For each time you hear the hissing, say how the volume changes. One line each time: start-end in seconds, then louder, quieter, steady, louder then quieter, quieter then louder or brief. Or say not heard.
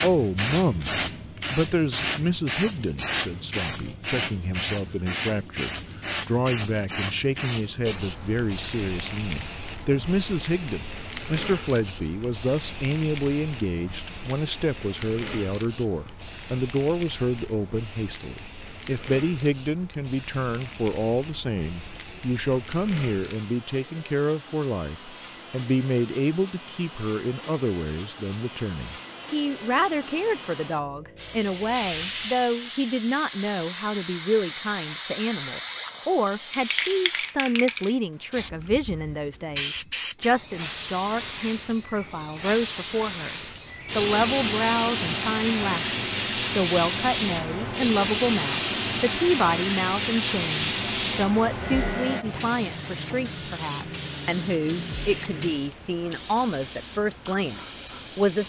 0.0-58.4 quieter then louder.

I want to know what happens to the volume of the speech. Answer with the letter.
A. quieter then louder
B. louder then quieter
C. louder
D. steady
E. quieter
D.